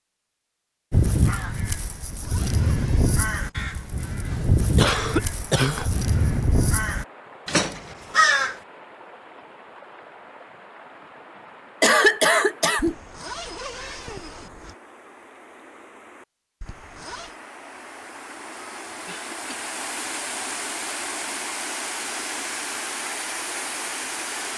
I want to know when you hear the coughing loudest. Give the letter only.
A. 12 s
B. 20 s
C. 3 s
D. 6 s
A.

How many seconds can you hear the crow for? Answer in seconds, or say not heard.
8 s.